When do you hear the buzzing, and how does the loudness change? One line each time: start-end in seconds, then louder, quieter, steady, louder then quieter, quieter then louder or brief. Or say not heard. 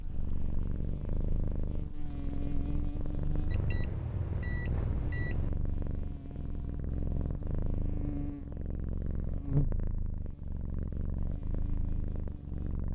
0.0-12.9 louder then quieter.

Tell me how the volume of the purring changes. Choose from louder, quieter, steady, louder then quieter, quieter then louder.
steady.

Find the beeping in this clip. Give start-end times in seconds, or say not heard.
3.5-5.5.